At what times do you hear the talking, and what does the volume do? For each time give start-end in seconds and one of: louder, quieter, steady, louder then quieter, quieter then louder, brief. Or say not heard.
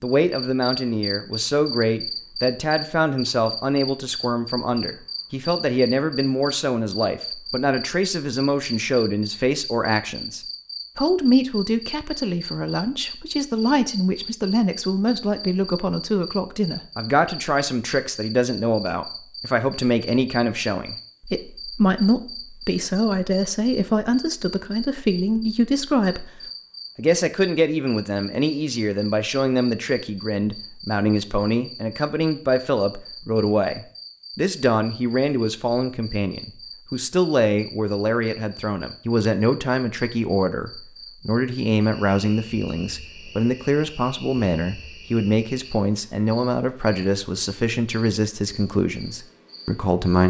0.0-50.2 steady.